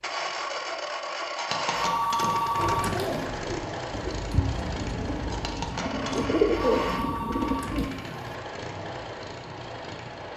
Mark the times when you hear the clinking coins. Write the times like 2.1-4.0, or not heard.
1.4-2.3, 5.3-6.2.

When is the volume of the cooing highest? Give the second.
7 s.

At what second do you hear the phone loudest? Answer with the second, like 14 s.
2 s.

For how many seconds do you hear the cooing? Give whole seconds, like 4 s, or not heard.
5 s.